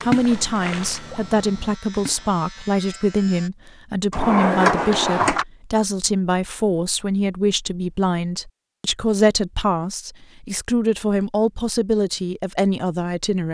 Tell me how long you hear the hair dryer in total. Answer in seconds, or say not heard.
not heard.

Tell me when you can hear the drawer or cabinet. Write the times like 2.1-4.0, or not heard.
4.1-5.5.